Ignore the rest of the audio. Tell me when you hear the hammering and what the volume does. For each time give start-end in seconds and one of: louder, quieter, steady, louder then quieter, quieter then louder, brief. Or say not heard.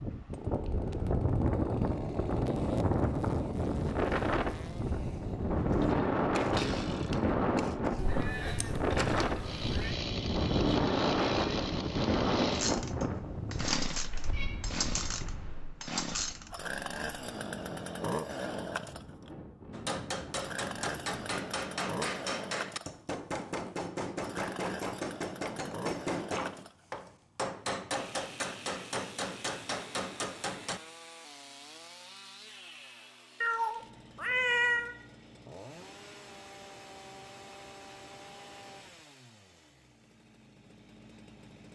19.7-30.8 steady.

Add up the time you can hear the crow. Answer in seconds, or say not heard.
not heard.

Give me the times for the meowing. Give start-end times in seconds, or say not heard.
8.0-9.9, 14.1-14.6, 33.4-35.0.